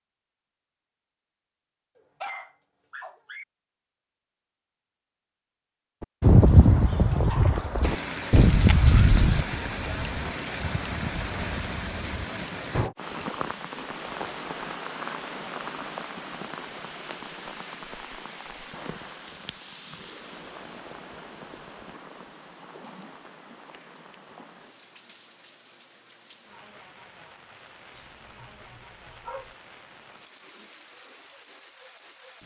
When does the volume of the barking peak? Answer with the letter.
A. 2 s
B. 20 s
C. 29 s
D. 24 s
A.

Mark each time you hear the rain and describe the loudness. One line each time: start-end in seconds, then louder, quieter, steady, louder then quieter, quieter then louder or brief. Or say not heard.
7.8-32.4 quieter.